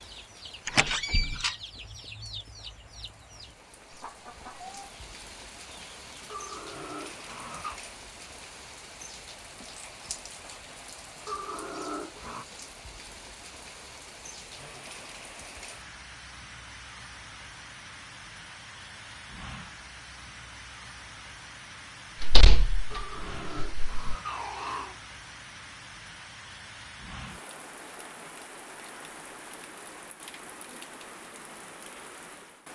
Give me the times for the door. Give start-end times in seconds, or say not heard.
0.7-1.5, 22.2-24.0.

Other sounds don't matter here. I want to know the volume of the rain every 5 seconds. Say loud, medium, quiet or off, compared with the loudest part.
medium, loud, loud, loud, loud, loud, loud.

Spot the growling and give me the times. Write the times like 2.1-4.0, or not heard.
6.3-7.8, 11.2-12.4, 22.9-25.0.